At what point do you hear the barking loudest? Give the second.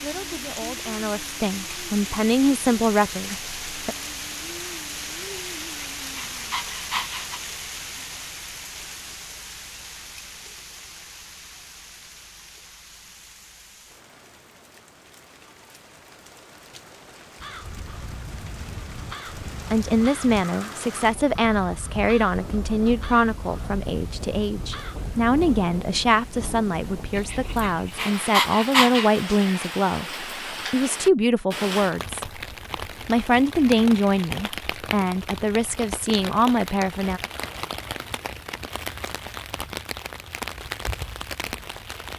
29 s.